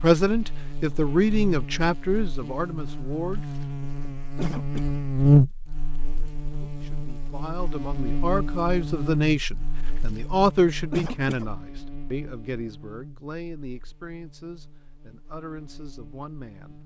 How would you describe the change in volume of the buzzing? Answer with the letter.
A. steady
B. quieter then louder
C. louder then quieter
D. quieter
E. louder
C.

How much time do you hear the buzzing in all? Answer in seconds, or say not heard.
17 s.